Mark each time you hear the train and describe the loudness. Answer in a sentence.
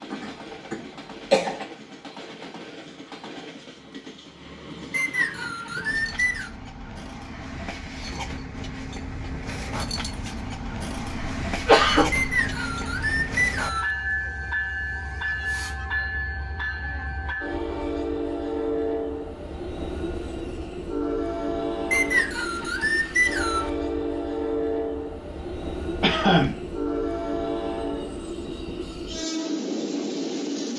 You can hear the train from 0.0 to 30.7 s, getting louder.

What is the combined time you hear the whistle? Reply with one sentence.
You can hear the whistle for 5 seconds altogether.